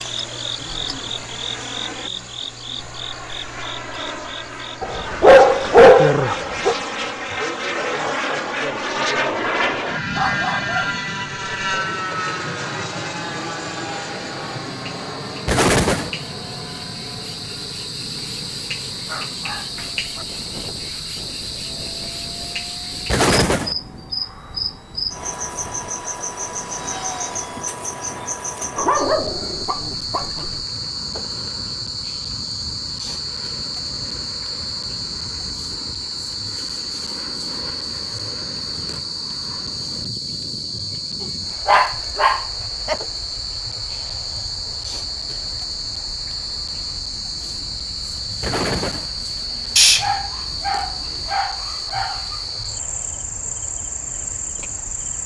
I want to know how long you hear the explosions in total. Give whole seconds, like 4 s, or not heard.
2 s.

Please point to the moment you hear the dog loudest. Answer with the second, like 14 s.
6 s.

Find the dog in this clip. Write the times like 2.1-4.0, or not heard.
4.8-6.8, 10.1-11.0, 19.1-20.2, 28.8-30.6, 41.6-43.0, 49.8-52.1.